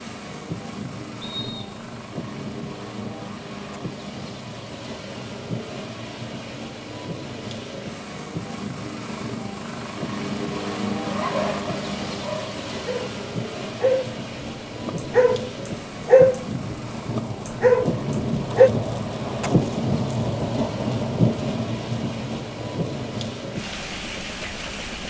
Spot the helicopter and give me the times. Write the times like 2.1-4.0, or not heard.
0.0-25.0.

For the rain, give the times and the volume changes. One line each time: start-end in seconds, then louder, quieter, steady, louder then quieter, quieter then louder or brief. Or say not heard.
0.1-25.0 louder.